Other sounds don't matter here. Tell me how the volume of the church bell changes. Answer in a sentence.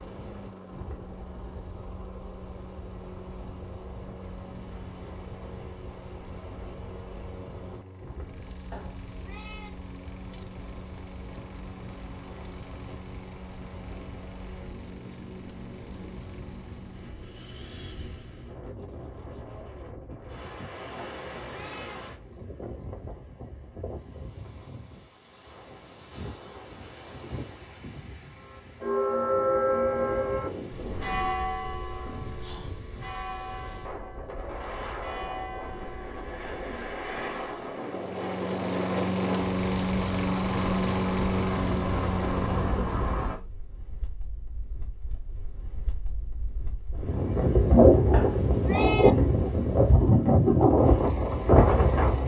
The volume of the church bell goes down.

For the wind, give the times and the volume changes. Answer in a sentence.
You can hear the wind from 0.0 to 52.2 s, getting louder.